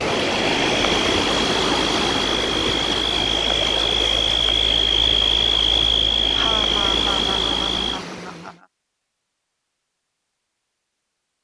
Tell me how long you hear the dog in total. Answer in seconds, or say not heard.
not heard.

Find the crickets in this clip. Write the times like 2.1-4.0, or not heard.
0.2-8.0.